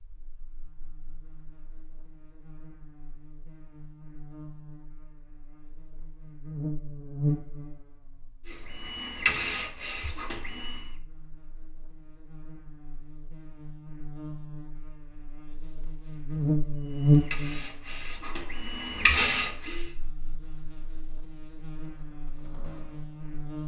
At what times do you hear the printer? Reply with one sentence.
The printer can be heard from 8.5 to 10.8 s and from 16.9 to 19.9 s.